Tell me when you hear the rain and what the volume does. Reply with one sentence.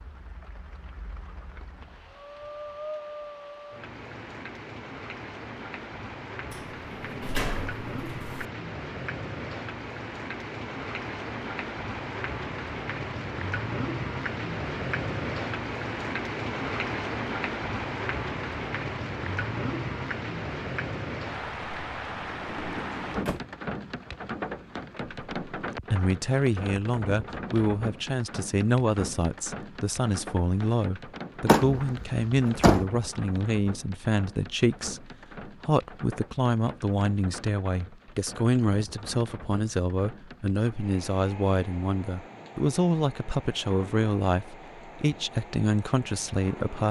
You can hear the rain from 0.0 to 46.8 s, getting louder then quieter.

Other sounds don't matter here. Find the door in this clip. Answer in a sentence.
The door can be heard from 6.5 to 8.4 s, from 22.3 to 23.4 s and from 31.4 to 32.9 s.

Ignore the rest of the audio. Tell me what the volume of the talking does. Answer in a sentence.
The volume of the talking stays about the same.